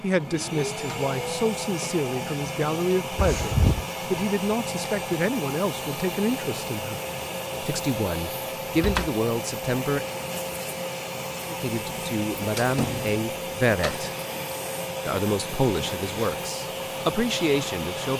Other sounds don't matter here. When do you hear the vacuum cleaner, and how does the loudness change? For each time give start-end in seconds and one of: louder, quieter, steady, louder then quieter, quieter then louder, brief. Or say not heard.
0.0-18.1 steady.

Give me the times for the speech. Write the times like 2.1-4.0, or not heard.
0.0-7.0, 7.6-10.2, 11.5-14.2, 15.1-18.1.